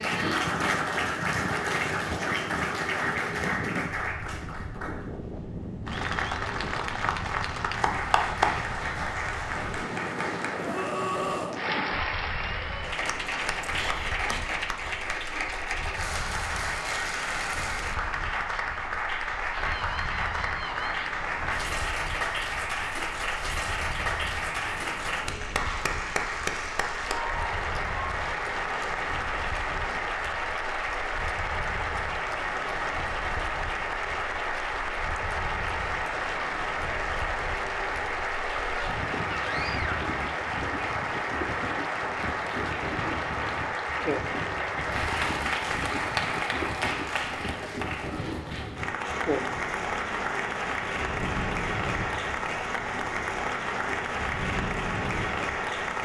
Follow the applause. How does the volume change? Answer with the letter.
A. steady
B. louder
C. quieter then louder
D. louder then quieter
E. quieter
A.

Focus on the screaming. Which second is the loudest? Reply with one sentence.
The loudest moment of the screaming is at 11 seconds.